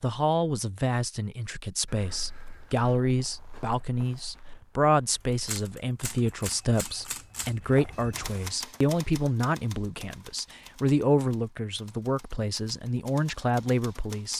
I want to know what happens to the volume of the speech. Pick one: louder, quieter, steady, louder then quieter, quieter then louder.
steady.